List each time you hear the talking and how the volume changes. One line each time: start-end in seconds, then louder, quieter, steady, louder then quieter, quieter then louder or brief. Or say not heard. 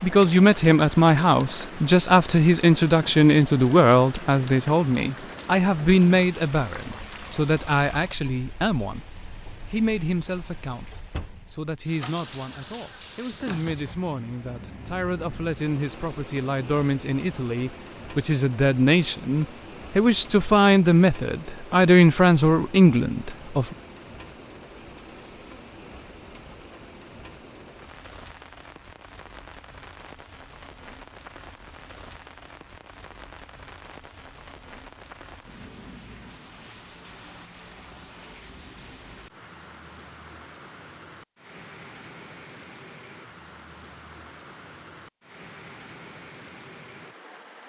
0.0-23.8 quieter then louder.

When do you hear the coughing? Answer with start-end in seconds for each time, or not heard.
not heard.